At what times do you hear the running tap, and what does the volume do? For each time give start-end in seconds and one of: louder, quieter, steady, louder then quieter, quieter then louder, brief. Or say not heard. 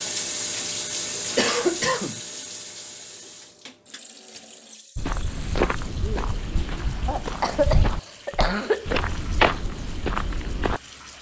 0.0-11.1 quieter.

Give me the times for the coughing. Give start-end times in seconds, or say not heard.
1.4-2.2, 7.0-9.0.